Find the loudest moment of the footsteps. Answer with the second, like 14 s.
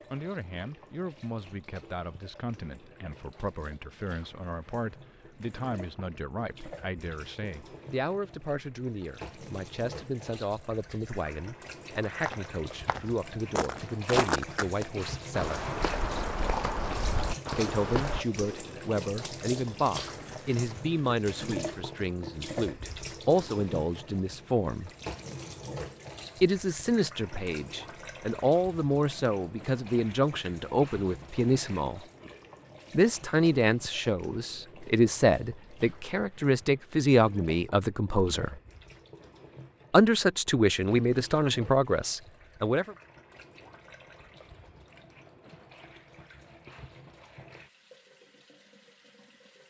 14 s.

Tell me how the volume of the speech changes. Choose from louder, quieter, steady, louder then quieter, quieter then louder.
louder.